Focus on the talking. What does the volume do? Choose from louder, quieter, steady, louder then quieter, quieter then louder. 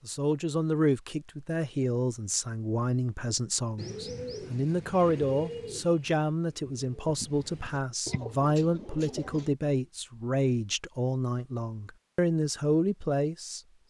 steady.